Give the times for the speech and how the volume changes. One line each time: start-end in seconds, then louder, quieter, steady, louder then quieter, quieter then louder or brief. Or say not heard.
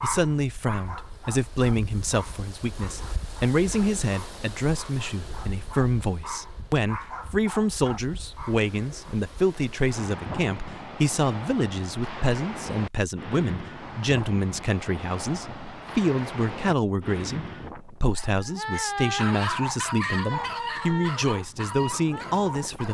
0.0-22.8 steady.